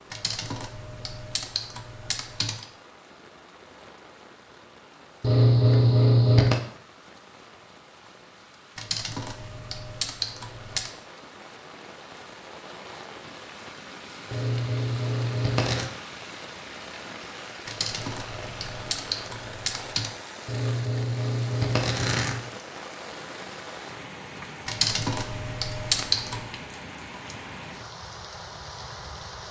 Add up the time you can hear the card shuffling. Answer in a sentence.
The card shuffling can be heard for 5 seconds in total.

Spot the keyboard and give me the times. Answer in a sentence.
The keyboard can be heard from 0.1 to 2.6 s, from 8.8 to 10.9 s, from 17.6 to 20.1 s and from 24.6 to 26.4 s.